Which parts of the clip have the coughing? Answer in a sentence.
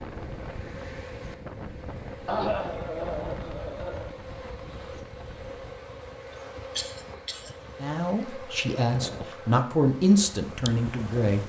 You can hear the coughing from 2.2 to 4.1 s and from 6.8 to 7.5 s.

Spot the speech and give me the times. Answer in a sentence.
You can hear the speech from 7.8 to 11.4 s.